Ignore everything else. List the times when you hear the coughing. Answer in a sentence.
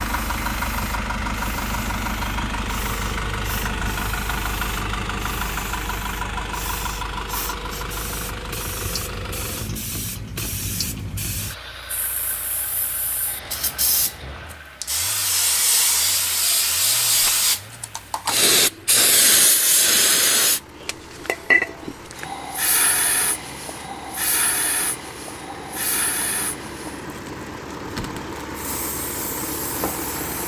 You can't hear the coughing here.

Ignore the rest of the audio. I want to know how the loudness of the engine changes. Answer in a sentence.
The loudness of the engine goes down, then up.